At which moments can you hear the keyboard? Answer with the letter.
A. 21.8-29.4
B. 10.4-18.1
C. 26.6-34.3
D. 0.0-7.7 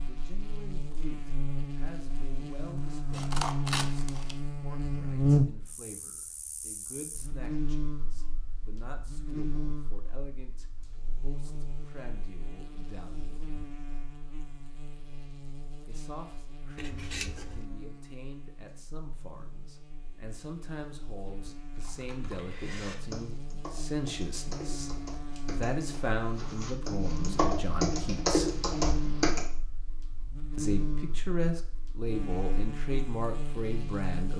A.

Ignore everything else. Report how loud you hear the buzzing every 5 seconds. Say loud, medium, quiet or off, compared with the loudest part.
medium, loud, quiet, quiet, quiet, medium, medium.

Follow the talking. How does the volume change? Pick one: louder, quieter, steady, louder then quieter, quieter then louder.
louder.